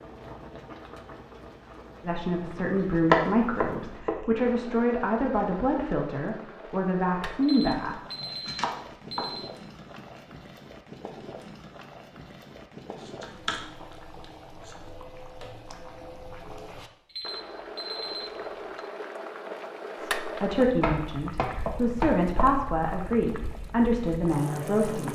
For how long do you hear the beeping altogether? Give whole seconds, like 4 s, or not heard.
4 s.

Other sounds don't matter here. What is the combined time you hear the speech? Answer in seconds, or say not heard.
11 s.